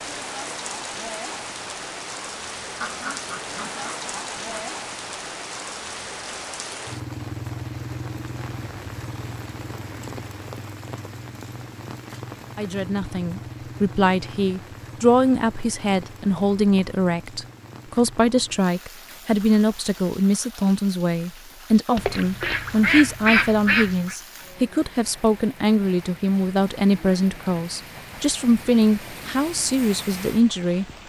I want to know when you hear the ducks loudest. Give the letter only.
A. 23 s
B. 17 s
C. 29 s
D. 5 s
A.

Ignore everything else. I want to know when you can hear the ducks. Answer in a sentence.
You can hear the ducks from 2.8 to 4.8 s and from 21.9 to 24.1 s.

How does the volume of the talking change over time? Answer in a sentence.
The volume of the talking stays about the same.